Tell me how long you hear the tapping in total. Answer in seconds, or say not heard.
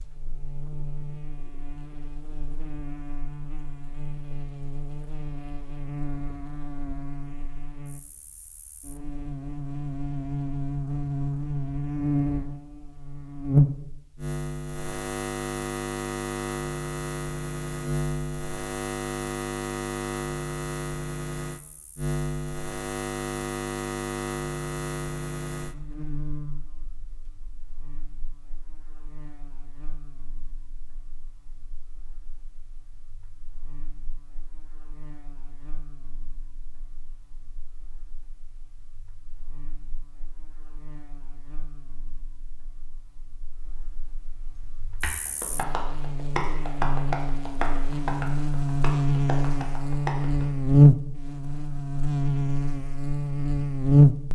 6 s.